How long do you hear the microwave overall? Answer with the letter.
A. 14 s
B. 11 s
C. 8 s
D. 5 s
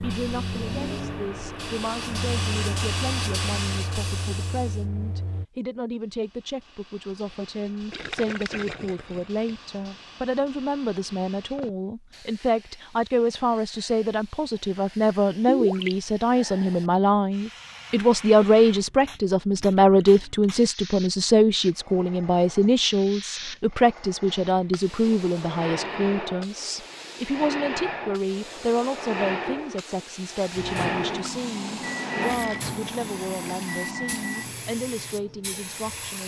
B.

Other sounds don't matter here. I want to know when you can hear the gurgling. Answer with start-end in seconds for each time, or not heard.
7.9-9.6, 15.4-15.9, 32.2-33.6.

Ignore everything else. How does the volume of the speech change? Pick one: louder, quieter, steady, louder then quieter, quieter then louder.
louder then quieter.